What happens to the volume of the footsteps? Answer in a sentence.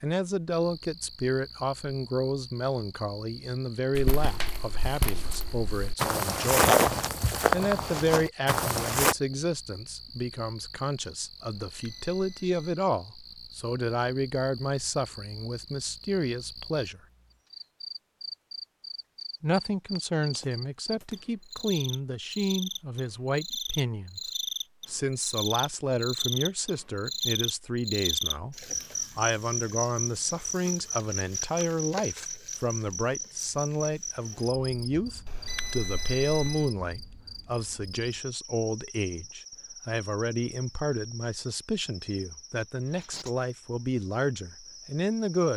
The loudness of the footsteps goes up, then down.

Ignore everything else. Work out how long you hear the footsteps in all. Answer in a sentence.
The footsteps can be heard for 5 seconds in total.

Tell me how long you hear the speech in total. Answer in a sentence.
You can hear the speech for 42 seconds altogether.